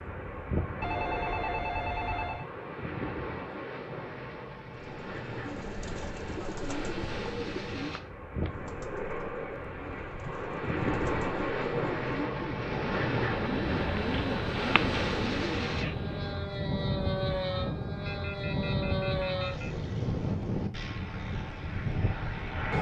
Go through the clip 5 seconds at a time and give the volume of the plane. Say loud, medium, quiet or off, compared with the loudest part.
medium, medium, loud, loud, loud.